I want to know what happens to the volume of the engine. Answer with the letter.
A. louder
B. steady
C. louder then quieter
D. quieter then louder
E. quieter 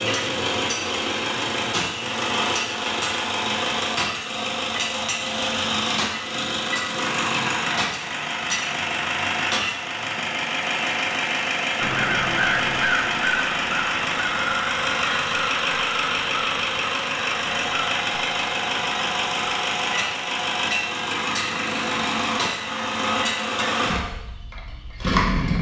B.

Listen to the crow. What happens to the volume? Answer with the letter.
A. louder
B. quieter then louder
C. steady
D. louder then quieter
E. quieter
E.